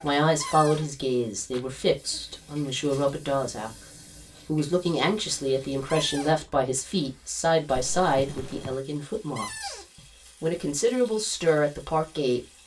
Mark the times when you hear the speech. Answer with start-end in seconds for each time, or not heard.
0.0-3.8, 4.5-12.4.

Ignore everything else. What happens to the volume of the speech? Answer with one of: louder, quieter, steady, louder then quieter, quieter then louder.
steady.